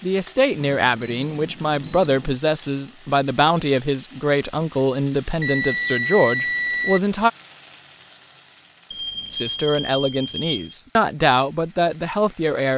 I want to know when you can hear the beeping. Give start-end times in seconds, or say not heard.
0.8-2.4, 5.4-7.0, 8.9-10.8.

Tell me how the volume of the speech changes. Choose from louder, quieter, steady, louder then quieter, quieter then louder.
steady.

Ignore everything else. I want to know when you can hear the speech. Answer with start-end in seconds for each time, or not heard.
0.0-7.3, 9.3-12.7.